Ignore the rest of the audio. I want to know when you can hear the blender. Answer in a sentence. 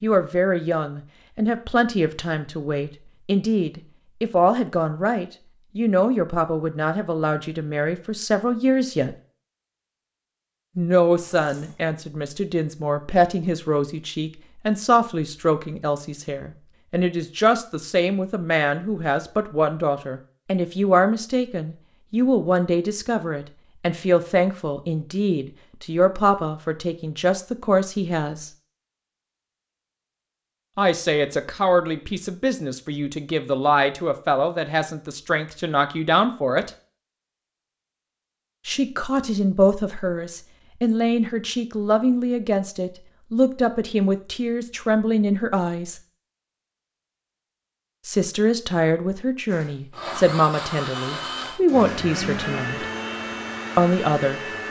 You can hear the blender from 49.5 to 54.6 s.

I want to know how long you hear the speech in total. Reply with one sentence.
The speech can be heard for 46 seconds in total.